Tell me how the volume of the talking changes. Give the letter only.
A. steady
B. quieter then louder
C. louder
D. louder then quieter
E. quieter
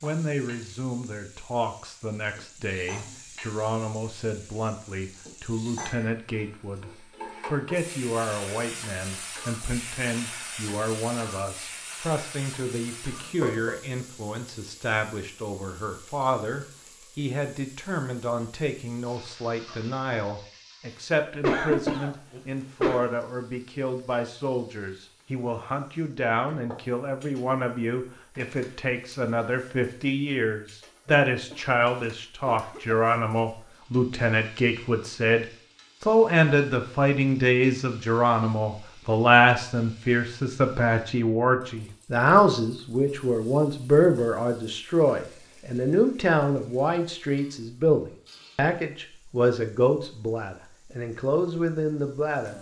C.